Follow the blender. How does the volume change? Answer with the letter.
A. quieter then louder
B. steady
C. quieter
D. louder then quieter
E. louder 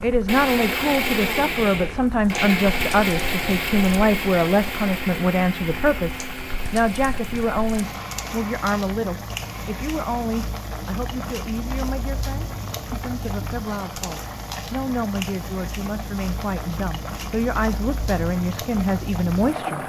C.